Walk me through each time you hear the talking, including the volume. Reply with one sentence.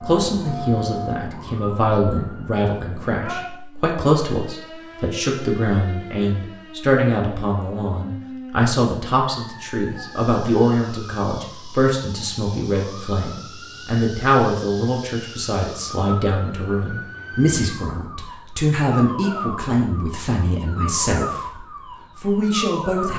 You can hear the talking from 0.0 to 21.4 s, at a steady volume; and briefly from 22.1 to 23.1 s.